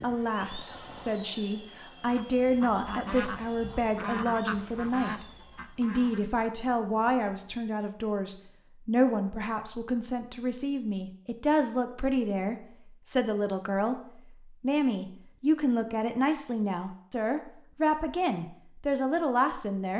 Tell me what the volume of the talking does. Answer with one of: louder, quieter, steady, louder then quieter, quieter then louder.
steady.